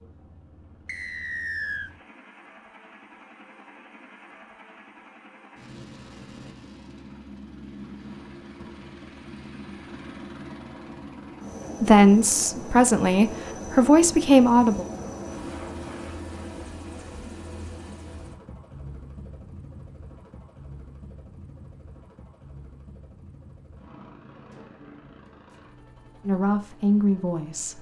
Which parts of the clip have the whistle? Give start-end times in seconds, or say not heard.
0.8-1.9.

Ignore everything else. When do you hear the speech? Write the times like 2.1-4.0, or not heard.
11.8-14.8, 26.2-27.7.